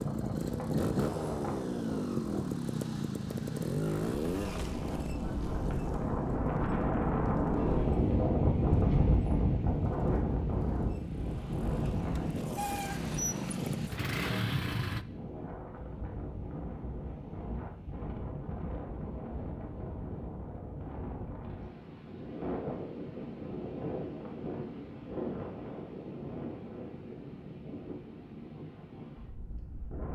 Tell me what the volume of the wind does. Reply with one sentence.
The loudness of the wind goes up, then down.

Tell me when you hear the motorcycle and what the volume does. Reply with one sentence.
The motorcycle can be heard from 0.0 to 15.1 s, getting quieter then louder.